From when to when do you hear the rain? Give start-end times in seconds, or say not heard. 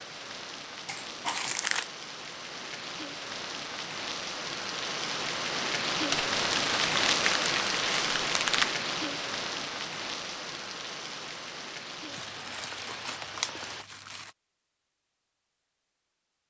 0.0-13.8.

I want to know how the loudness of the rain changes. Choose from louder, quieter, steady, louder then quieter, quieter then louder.
louder then quieter.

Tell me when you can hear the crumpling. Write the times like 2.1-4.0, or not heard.
0.8-1.9, 6.1-8.8, 12.1-14.3.